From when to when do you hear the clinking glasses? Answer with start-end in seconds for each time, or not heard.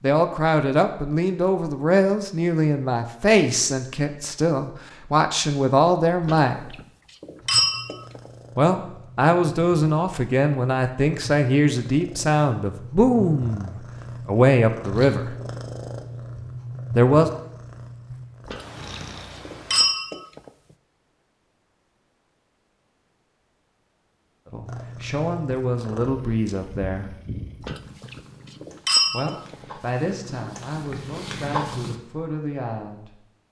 6.2-8.3, 18.4-20.5, 27.6-29.6.